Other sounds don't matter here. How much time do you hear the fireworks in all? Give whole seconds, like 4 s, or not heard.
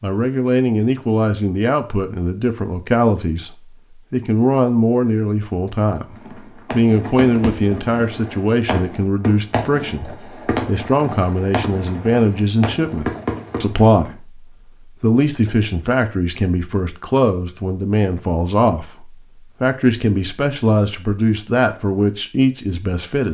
8 s.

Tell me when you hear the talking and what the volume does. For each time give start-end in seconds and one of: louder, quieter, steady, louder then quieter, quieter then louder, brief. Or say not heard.
0.0-23.2 steady.